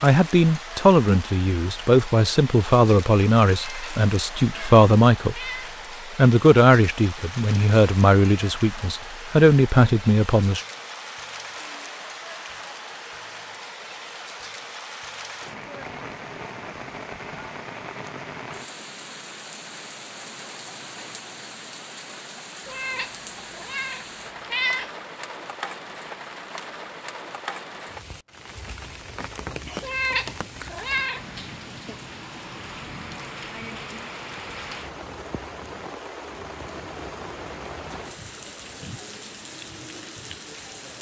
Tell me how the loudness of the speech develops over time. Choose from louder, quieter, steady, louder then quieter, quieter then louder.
steady.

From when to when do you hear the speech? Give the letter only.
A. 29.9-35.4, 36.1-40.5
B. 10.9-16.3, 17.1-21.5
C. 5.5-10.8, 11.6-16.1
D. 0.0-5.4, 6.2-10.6
D.